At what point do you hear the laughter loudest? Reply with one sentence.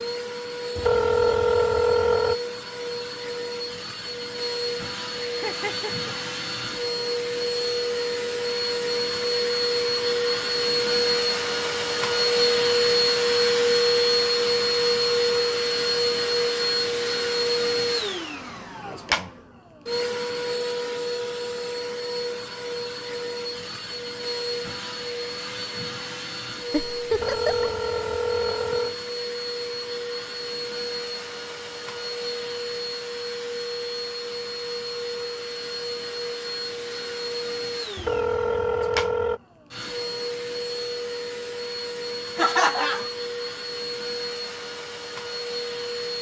The loudest moment of the laughter is at 43 seconds.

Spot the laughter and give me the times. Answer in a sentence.
You can hear the laughter from 5.2 to 6.1 s, from 26.7 to 27.7 s and from 42.4 to 43.1 s.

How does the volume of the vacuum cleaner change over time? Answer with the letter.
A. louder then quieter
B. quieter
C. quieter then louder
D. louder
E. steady
A.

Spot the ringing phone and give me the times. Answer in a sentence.
You can hear the ringing phone from 0.8 to 2.4 s, from 27.1 to 28.9 s and from 38.0 to 39.4 s.